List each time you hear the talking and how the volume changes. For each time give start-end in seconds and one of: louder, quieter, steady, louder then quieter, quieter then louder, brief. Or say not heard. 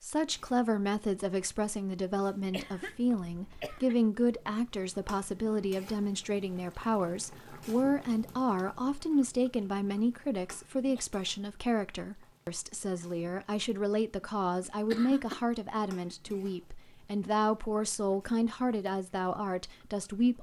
0.0-20.3 steady.